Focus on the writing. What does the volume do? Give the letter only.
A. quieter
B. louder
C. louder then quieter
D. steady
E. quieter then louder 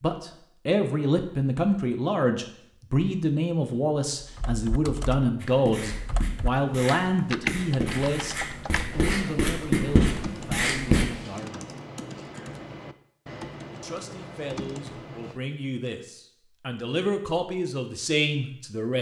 B.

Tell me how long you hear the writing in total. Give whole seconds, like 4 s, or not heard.
6 s.